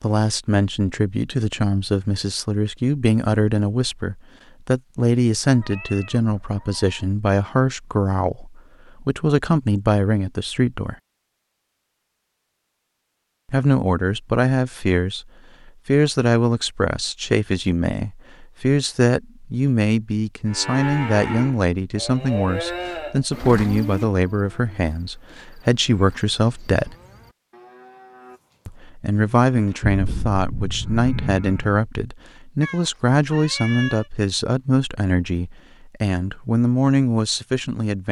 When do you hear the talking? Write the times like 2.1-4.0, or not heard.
0.0-10.9, 13.4-26.9, 28.6-38.0.